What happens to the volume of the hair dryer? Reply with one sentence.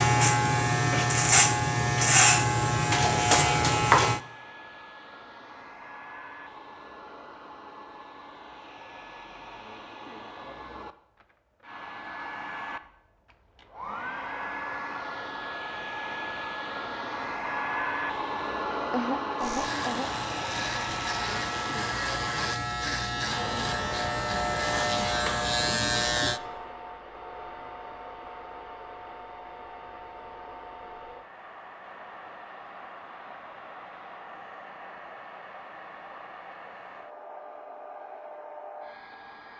The volume of the hair dryer goes up, then down.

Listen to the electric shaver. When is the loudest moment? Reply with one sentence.
The volume of the electric shaver peaks at 2 seconds.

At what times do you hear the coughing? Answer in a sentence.
You can hear the coughing from 18.9 to 20.1 s.